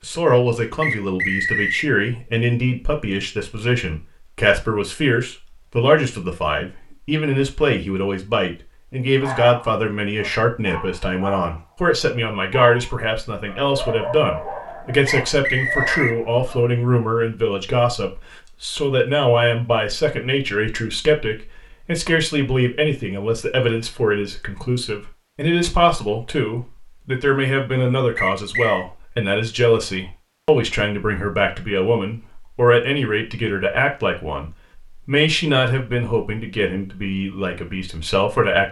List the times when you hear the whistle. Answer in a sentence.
You can hear the whistle from 0.8 to 1.9 s, from 15.1 to 16.1 s and from 28.1 to 28.9 s.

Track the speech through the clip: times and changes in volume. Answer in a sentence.
The speech can be heard from 0.0 to 38.6 s, at a steady volume.